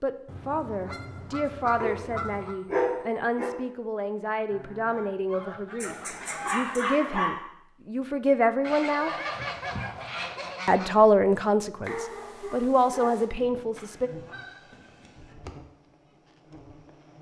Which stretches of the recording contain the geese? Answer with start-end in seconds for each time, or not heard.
0.2-2.5, 4.5-6.8, 8.6-10.9, 13.8-15.3.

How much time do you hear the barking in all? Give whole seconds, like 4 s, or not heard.
5 s.